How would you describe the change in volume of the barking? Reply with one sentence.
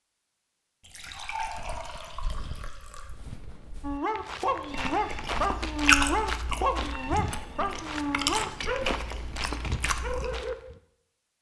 The loudness of the barking goes down.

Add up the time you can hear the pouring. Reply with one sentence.
The pouring can be heard for 2 seconds in total.